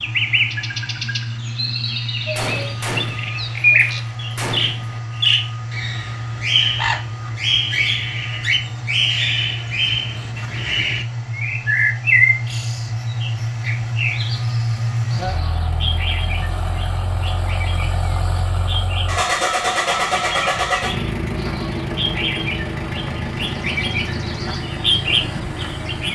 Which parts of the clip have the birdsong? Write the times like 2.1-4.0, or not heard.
0.0-26.0.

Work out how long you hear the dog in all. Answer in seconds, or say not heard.
not heard.